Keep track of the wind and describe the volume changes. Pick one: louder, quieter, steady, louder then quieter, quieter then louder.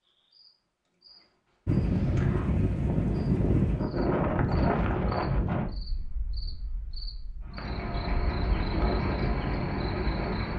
quieter then louder.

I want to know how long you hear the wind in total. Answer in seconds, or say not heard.
9 s.